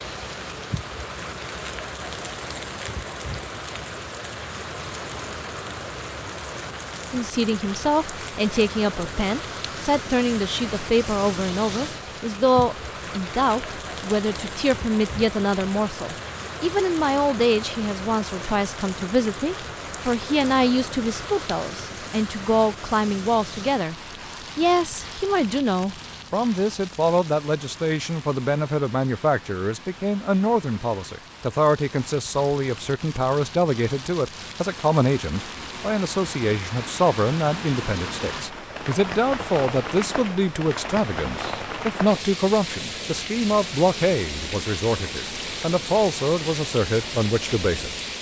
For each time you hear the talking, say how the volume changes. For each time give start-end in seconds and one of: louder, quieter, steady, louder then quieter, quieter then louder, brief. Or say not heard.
7.1-23.9 steady
24.6-47.9 steady.